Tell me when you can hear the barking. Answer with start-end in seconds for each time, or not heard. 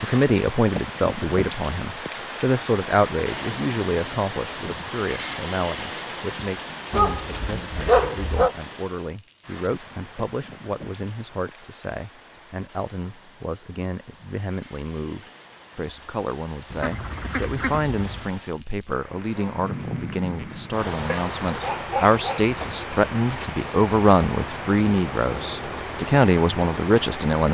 6.9-8.5, 21.1-22.5.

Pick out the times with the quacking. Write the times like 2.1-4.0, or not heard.
16.7-18.3.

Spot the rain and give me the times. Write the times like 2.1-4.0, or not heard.
0.0-27.4.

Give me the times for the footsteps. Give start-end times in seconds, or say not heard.
not heard.